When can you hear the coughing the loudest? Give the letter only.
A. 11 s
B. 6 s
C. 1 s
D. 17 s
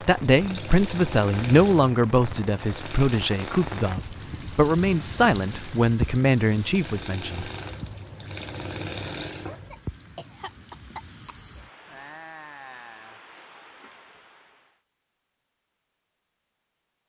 A.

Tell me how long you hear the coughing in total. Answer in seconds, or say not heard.
2 s.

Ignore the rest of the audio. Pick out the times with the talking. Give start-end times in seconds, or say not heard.
0.0-7.5.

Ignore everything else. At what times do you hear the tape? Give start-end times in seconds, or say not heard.
not heard.